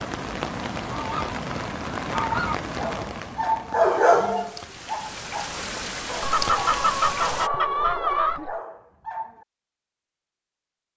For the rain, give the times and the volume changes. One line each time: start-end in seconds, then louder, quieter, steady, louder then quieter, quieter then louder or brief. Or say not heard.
0.0-7.5 quieter then louder.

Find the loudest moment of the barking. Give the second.
4 s.